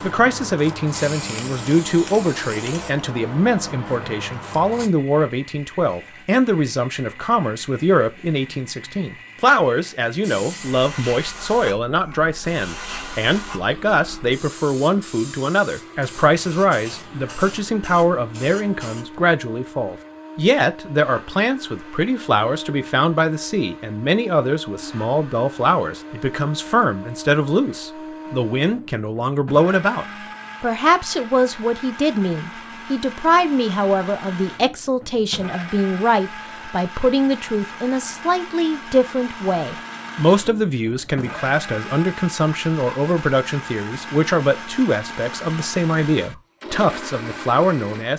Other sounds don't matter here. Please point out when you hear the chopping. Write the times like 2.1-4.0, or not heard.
not heard.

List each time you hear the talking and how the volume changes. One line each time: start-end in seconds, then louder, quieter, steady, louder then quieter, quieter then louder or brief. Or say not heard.
0.0-48.1 steady.